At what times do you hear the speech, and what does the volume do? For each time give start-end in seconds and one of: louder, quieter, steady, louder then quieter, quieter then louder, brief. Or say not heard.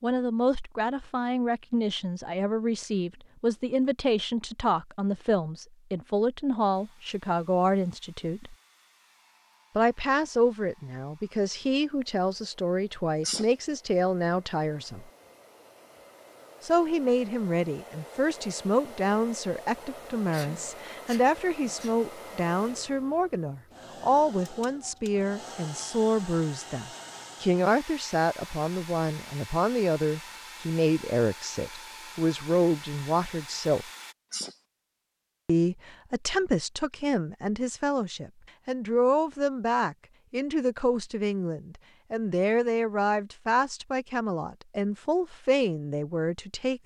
0.0-8.6 steady
9.8-15.1 steady
16.6-33.9 steady
35.5-46.8 steady.